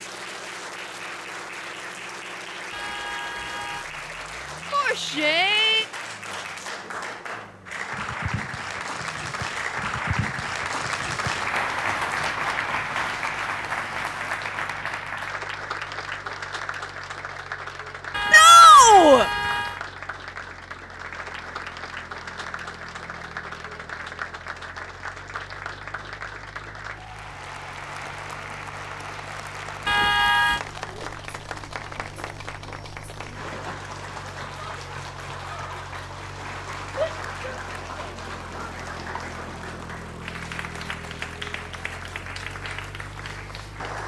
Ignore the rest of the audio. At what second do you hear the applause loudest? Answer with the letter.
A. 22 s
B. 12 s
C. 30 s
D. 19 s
B.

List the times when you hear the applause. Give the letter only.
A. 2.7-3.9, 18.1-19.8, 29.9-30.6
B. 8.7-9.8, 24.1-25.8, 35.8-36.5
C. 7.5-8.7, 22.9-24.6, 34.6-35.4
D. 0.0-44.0
D.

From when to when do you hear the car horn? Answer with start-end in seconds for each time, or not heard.
2.7-3.9, 18.1-19.8, 29.9-30.6.